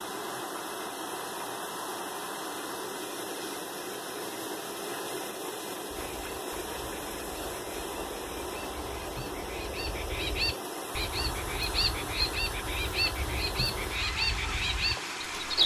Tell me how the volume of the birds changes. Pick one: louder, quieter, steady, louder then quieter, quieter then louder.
louder.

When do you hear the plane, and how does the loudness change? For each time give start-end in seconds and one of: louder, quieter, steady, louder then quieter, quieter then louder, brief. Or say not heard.
not heard.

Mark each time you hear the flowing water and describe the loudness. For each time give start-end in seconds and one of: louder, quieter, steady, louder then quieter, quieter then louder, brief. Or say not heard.
0.0-15.6 steady.